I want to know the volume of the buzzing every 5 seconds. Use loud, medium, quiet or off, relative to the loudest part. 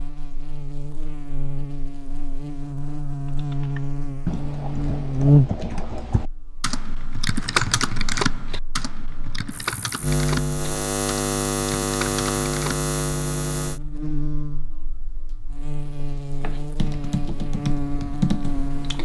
medium, loud, loud, medium.